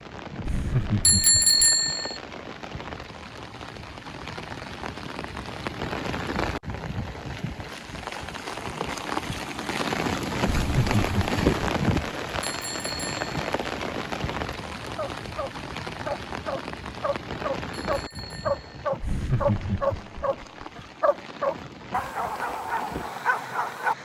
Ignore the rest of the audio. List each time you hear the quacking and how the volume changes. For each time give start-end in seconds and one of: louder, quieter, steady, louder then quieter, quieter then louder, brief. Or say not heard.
not heard.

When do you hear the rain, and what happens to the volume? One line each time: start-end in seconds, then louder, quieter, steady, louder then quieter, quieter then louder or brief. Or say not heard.
0.0-24.0 louder then quieter.